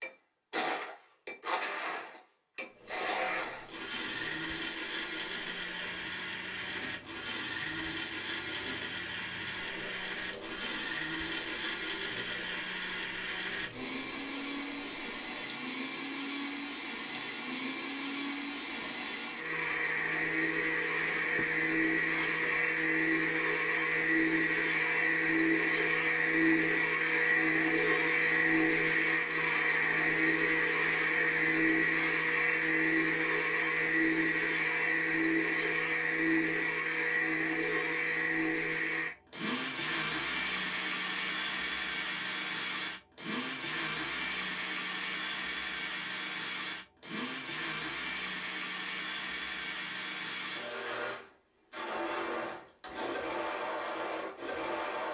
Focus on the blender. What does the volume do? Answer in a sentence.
The loudness of the blender goes up, then down.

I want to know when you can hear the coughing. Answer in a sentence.
You can't hear the coughing here.